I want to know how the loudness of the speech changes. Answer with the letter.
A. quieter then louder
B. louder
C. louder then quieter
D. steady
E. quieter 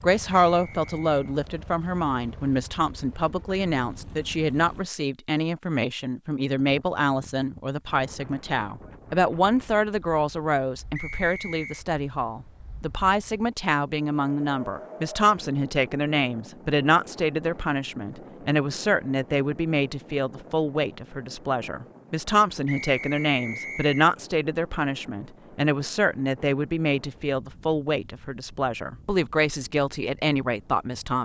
D.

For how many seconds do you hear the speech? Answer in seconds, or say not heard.
31 s.